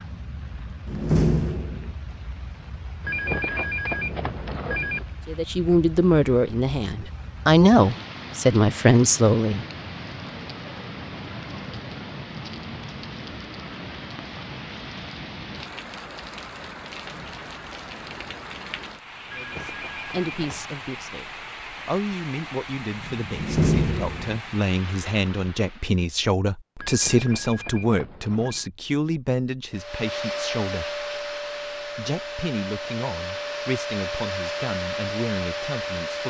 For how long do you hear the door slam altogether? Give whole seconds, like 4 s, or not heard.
2 s.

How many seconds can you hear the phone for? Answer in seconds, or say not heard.
5 s.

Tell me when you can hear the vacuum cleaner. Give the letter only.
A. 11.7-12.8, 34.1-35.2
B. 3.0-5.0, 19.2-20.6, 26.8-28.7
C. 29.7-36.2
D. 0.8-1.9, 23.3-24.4
C.